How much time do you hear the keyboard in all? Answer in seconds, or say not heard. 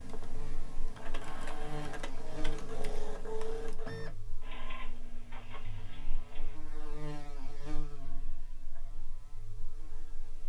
4 s.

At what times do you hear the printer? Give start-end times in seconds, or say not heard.
0.0-6.5.